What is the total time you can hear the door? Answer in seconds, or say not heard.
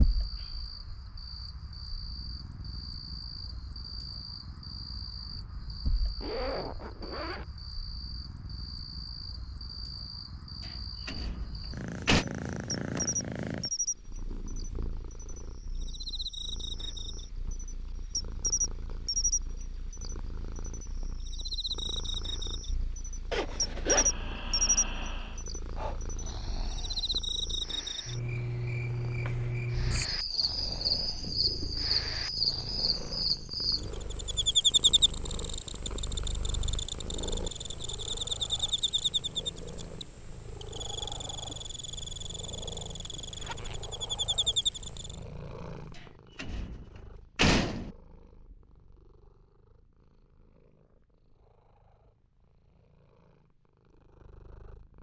3 s.